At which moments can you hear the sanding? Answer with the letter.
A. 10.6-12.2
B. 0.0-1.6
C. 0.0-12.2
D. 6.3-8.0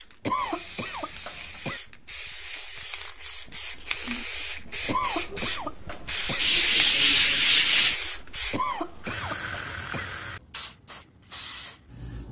D.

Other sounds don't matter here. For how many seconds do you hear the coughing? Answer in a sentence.
You can hear the coughing for 5 seconds altogether.